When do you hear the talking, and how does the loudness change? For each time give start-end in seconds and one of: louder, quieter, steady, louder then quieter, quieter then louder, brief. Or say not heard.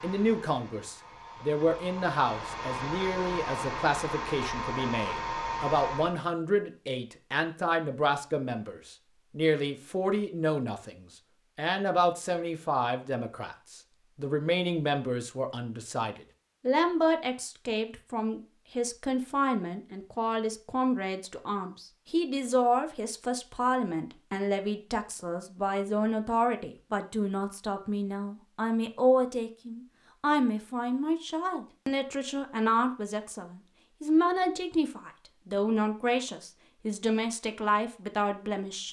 0.0-38.8 steady.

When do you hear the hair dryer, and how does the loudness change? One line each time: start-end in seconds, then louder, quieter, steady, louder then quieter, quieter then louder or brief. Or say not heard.
0.0-6.2 louder.